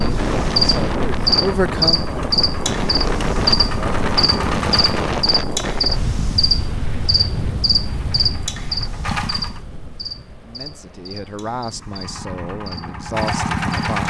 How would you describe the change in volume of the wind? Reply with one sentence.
The loudness of the wind goes down.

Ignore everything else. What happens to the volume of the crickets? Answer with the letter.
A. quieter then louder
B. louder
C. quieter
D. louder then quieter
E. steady
C.